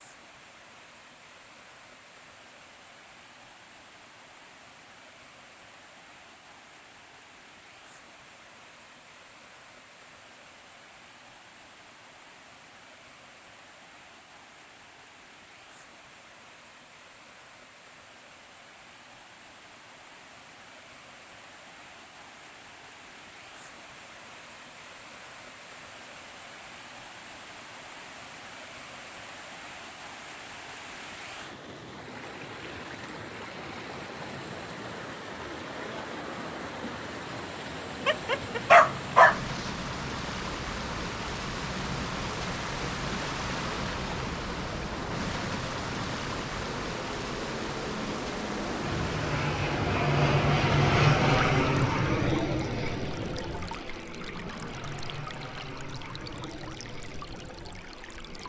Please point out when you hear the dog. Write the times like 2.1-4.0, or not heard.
38.0-39.4.